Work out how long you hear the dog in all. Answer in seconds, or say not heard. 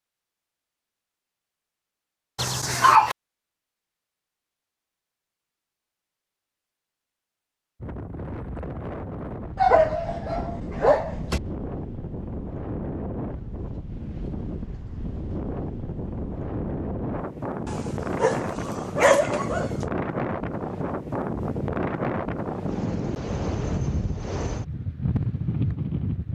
5 s.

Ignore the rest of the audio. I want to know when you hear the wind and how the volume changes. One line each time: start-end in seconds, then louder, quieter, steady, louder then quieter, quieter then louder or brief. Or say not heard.
7.8-26.2 louder.